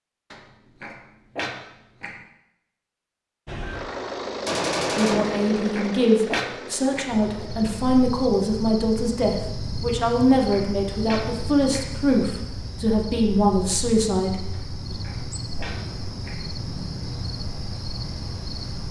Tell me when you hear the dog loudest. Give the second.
6 s.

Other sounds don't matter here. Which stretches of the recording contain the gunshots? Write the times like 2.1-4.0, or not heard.
4.5-5.5.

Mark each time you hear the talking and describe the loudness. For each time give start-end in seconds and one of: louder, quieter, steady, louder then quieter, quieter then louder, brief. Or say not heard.
5.0-14.9 steady.